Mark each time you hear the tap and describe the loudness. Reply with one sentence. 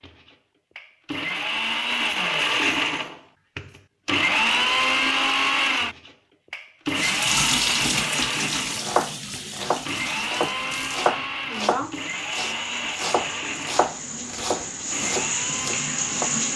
The tap can be heard from 7.0 to 16.5 s, getting quieter then louder.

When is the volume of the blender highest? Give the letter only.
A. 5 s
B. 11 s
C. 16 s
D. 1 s
A.